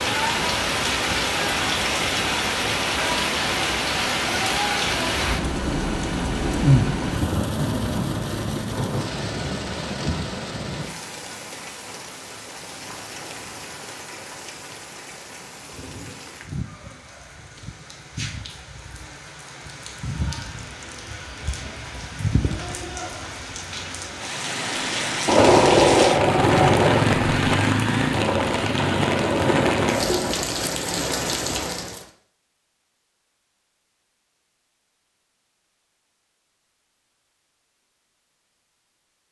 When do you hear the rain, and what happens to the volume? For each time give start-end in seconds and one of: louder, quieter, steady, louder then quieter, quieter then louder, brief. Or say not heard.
0.0-32.0 quieter then louder.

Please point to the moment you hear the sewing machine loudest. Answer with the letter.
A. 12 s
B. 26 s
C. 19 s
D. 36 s
B.